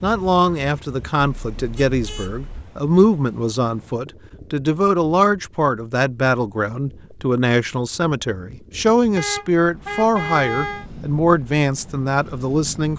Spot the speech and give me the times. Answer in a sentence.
The speech can be heard from 0.0 to 12.9 s.